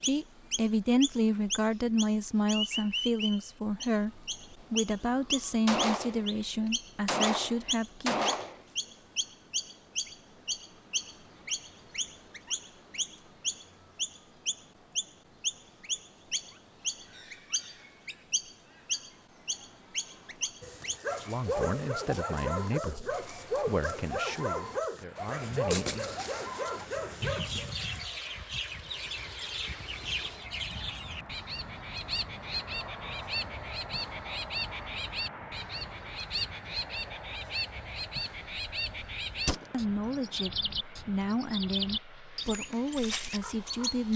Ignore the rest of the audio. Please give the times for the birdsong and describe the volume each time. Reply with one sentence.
You can hear the birdsong from 0.0 to 44.1 s, at a steady volume.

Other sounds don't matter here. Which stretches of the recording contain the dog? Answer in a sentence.
The dog can be heard from 20.6 to 28.0 s.